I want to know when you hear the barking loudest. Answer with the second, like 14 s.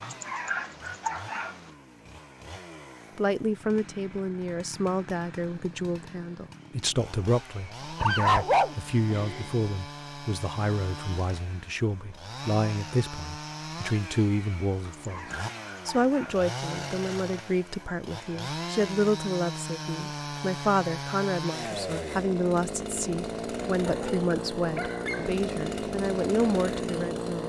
8 s.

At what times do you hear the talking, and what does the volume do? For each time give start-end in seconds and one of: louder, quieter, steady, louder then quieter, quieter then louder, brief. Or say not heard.
3.1-15.2 steady
15.8-27.4 steady.